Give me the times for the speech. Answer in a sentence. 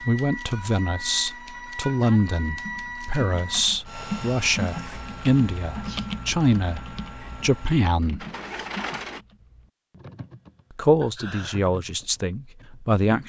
You can hear the speech from 0.0 to 8.2 s and from 10.8 to 13.2 s.